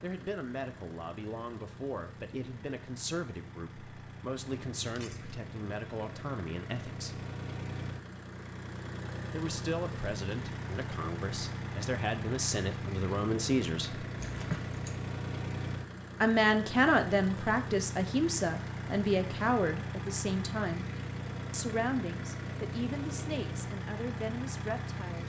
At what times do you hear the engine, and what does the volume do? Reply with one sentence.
You can hear the engine from 0.0 to 25.2 s, getting louder.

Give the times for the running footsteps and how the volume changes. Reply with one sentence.
You can't hear the running footsteps here.